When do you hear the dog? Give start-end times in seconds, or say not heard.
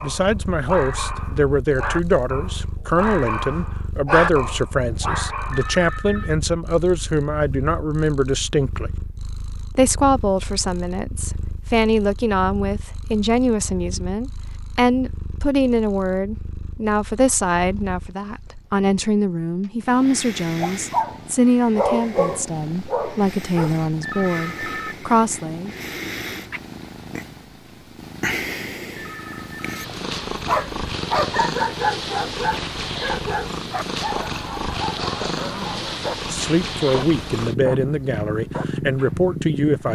0.0-5.8, 20.6-23.9, 30.4-39.9.